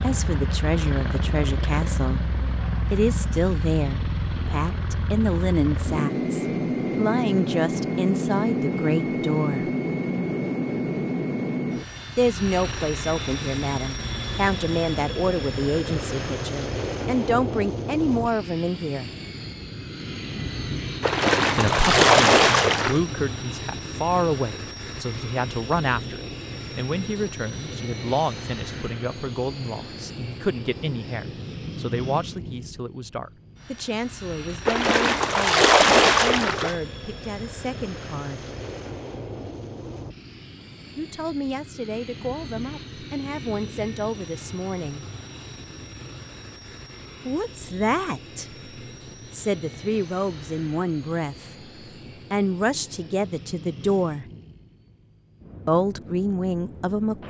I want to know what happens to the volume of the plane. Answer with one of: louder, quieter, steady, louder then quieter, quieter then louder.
quieter.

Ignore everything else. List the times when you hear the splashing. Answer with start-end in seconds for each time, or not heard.
21.0-23.0, 34.6-36.8.